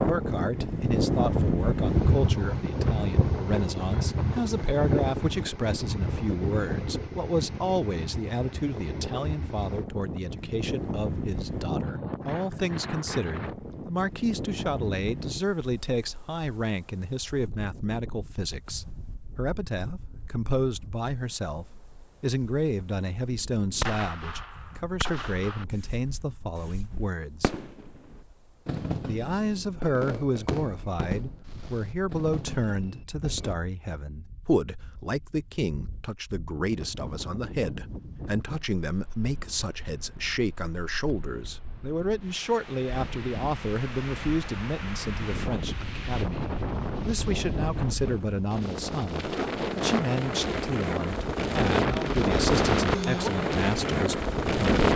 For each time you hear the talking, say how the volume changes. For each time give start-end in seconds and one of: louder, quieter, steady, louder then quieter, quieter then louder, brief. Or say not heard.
0.0-27.6 steady
29.1-54.9 steady.